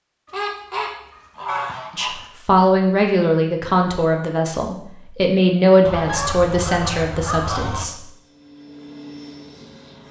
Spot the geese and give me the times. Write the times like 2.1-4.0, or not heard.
0.2-2.2, 5.8-7.8.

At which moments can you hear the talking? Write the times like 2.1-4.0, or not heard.
1.9-8.1.